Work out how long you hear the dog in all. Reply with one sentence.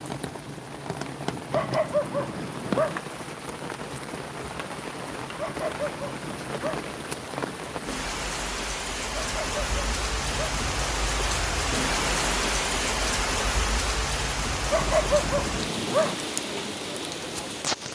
You can hear the dog for 6 seconds altogether.